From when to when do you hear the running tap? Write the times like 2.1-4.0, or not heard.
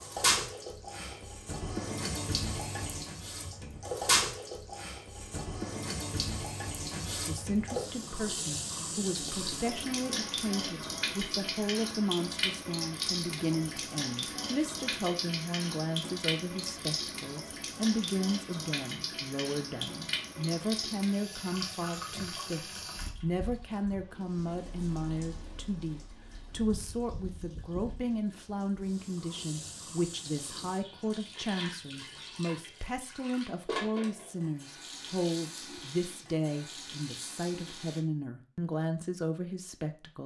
0.0-38.0.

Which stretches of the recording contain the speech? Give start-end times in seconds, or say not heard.
7.2-40.2.